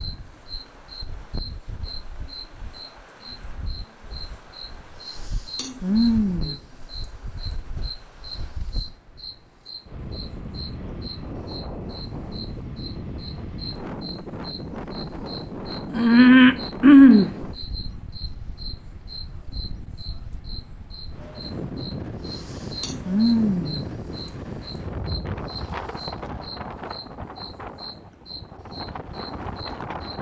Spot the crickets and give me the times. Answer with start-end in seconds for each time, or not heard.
0.0-30.1.